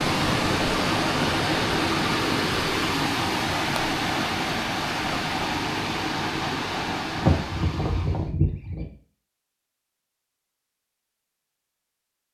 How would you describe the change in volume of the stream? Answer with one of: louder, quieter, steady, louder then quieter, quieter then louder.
quieter.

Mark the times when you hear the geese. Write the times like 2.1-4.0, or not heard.
7.2-8.8.